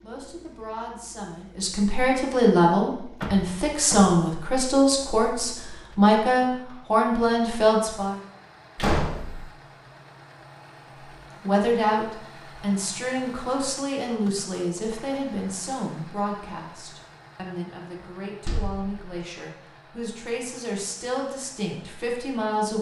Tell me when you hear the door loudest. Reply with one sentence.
The volume of the door peaks at 9 seconds.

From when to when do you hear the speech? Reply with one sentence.
You can hear the speech from 0.0 to 8.2 s and from 11.4 to 22.7 s.